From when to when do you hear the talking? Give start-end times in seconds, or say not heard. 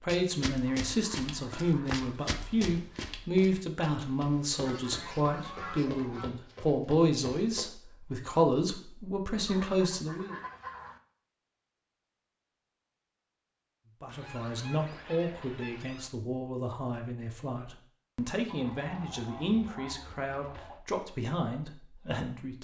0.0-10.3, 14.0-22.5.